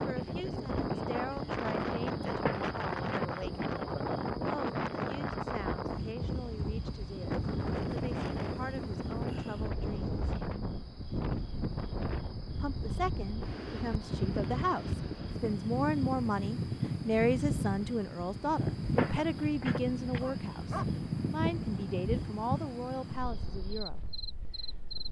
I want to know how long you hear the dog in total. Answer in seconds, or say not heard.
3 s.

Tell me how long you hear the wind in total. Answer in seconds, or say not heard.
25 s.